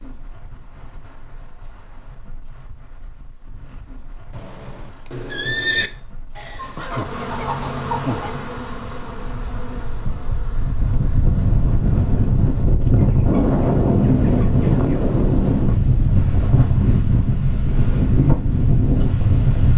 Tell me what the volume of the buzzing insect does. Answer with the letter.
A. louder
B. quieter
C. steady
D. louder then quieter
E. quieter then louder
B.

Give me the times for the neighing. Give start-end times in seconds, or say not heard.
4.3-5.9.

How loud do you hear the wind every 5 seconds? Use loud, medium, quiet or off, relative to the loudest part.
quiet, quiet, loud, loud.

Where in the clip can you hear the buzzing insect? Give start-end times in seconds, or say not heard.
6.3-12.5.